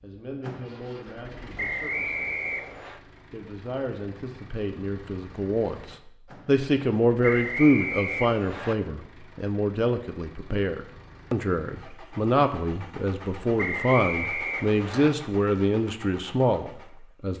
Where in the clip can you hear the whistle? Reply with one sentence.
The whistle can be heard from 1.6 to 3.0 s, from 7.2 to 8.8 s and from 13.6 to 15.1 s.